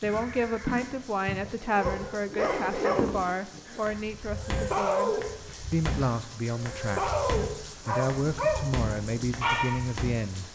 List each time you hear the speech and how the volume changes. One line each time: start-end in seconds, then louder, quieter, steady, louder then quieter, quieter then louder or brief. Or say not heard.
0.0-10.4 steady.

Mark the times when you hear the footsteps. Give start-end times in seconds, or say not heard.
0.0-10.2.